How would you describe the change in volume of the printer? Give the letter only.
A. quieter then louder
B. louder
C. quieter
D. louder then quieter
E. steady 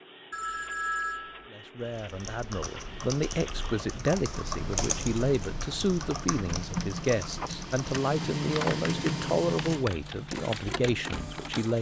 B.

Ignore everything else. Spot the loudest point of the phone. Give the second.
1 s.